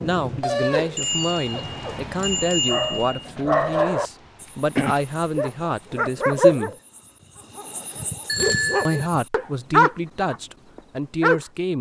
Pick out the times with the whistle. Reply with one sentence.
You can't hear the whistle here.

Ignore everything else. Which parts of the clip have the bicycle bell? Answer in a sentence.
You can hear the bicycle bell from 0.9 to 3.2 s and from 8.2 to 9.1 s.